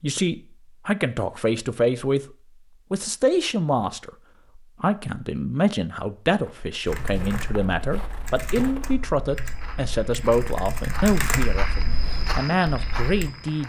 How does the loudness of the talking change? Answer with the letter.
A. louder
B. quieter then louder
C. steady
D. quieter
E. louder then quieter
C.